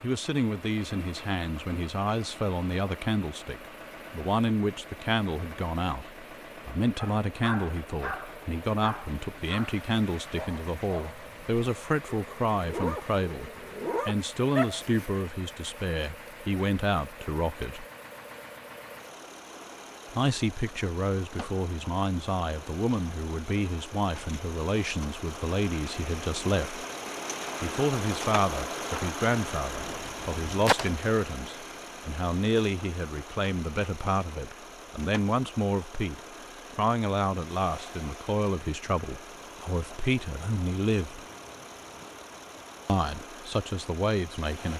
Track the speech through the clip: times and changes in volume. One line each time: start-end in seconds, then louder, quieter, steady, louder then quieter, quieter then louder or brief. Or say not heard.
0.0-17.9 steady
20.1-26.9 steady
27.6-41.2 steady
42.9-44.7 brief.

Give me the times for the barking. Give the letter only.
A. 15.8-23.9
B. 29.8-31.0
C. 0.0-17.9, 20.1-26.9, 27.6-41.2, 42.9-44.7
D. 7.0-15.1
D.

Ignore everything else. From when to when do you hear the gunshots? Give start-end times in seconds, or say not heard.
29.8-31.0.